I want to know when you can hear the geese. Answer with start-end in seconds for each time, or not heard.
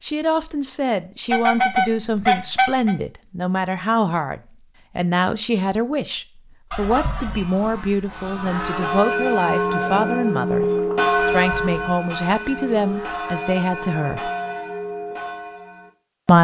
1.3-3.0, 6.7-9.1, 11.2-13.3.